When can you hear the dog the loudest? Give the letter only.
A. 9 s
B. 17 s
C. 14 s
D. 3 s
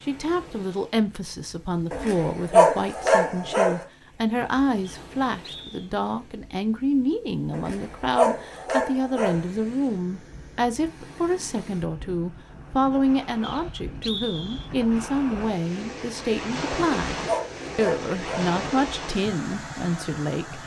D.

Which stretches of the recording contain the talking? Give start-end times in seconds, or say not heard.
0.0-20.6.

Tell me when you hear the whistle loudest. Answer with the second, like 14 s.
14 s.